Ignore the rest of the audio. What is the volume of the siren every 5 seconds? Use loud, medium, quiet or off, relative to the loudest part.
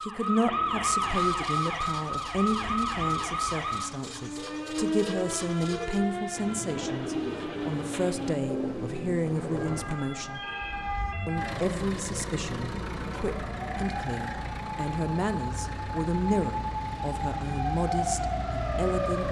loud, medium, medium, loud.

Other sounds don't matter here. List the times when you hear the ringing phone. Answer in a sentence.
The ringing phone can be heard from 10.3 to 10.9 s.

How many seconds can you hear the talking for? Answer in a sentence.
The talking can be heard for 18 seconds in total.